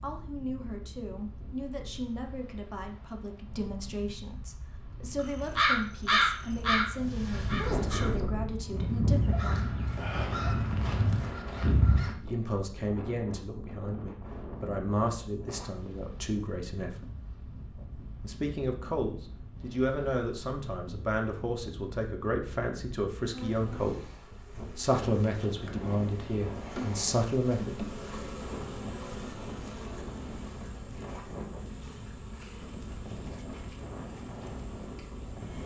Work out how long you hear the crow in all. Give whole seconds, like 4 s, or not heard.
7 s.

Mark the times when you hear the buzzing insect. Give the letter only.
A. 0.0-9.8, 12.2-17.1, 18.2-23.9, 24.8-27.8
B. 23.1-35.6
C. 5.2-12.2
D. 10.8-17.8
B.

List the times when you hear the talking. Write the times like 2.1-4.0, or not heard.
0.0-9.8, 12.2-17.1, 18.2-23.9, 24.8-27.8.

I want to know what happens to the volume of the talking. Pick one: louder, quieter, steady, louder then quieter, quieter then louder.
louder.